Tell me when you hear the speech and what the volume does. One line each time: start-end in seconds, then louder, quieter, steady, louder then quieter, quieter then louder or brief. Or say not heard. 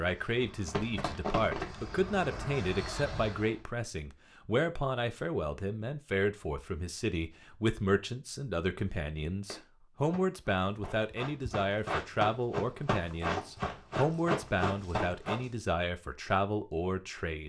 0.0-17.4 steady.